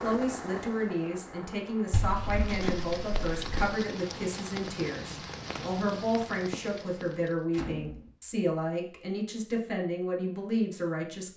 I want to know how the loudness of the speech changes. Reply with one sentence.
The loudness of the speech stays about the same.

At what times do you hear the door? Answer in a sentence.
You can hear the door from 1.9 to 3.7 s and from 7.5 to 8.1 s.